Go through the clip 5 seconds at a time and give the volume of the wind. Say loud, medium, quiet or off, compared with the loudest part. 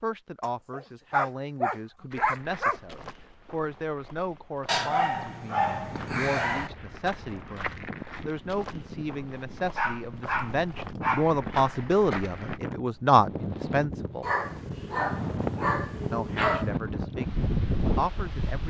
off, quiet, medium, loud.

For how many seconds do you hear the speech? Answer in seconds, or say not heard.
17 s.